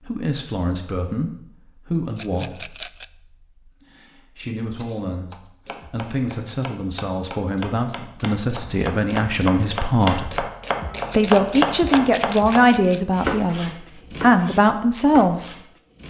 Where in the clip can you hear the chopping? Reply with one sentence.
You can hear the chopping from 4.8 to 16.0 s.